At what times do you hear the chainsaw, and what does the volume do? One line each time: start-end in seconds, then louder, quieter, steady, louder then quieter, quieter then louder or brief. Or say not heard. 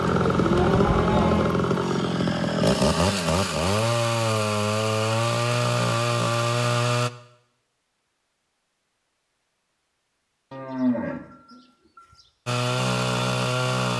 0.0-7.1 steady
12.4-13.9 brief.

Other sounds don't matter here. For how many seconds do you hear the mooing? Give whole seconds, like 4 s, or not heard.
3 s.